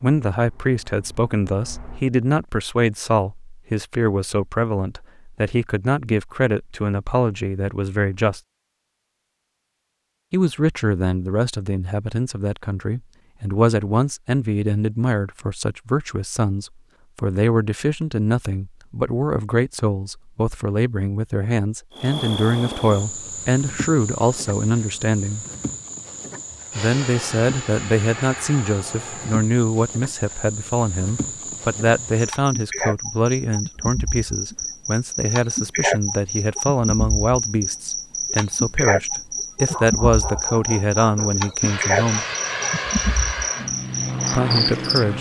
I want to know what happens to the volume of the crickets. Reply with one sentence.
The volume of the crickets goes up.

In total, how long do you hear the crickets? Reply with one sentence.
The crickets can be heard for 23 seconds in total.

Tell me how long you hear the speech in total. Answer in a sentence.
You can hear the speech for 40 seconds altogether.